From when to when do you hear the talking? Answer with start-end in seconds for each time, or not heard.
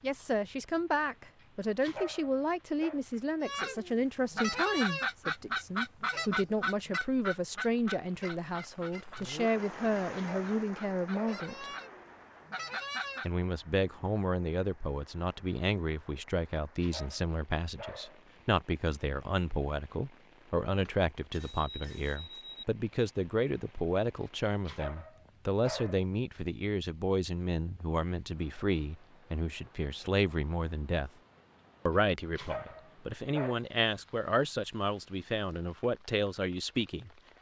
0.0-11.7, 13.2-31.1, 31.9-37.1.